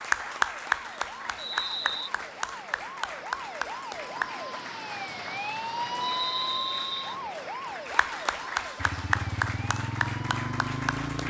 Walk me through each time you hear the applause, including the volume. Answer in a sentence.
The applause can be heard from 0.0 to 11.2 s, getting quieter then louder.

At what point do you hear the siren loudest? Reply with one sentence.
The volume of the siren peaks at 6 seconds.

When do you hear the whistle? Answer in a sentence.
You can hear the whistle from 1.4 to 2.1 s and from 6.0 to 7.2 s.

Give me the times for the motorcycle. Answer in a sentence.
The motorcycle can be heard from 8.8 to 11.2 s.